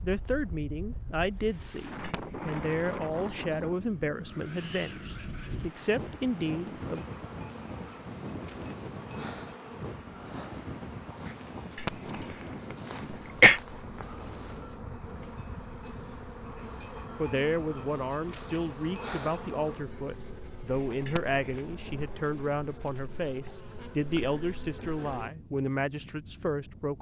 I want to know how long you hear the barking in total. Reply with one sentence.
The barking can't be heard in this clip.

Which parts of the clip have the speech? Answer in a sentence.
The speech can be heard from 0.0 to 7.0 s and from 17.1 to 26.9 s.